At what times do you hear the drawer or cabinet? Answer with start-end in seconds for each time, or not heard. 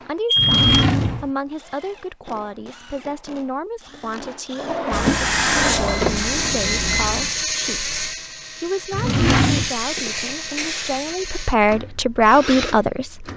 0.3-1.3, 4.5-6.5, 8.9-9.7.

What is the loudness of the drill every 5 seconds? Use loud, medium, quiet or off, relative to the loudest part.
quiet, loud, medium.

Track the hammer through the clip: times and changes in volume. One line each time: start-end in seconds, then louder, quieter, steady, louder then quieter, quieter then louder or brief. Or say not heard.
not heard.